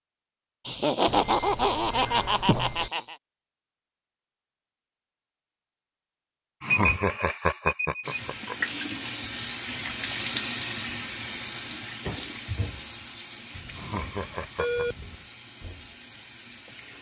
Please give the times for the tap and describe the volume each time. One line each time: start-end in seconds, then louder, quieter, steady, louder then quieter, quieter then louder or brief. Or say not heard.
8.0-16.9 quieter.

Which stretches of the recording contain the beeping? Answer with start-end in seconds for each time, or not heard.
1.1-2.9, 6.7-8.2, 13.6-15.2.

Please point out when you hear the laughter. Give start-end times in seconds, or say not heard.
0.7-3.1, 6.6-8.6, 13.8-14.8.